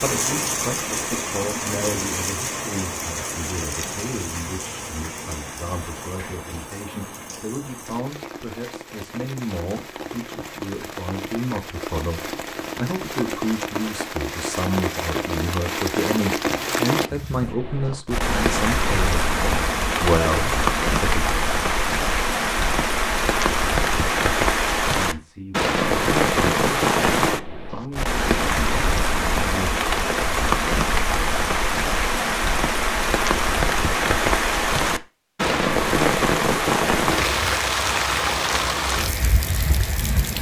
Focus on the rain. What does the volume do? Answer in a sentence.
The volume of the rain goes up.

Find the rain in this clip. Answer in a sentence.
You can hear the rain from 0.0 to 40.3 s.